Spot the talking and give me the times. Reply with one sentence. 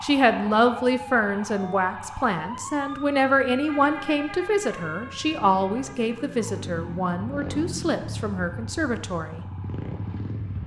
You can hear the talking from 0.0 to 9.4 s.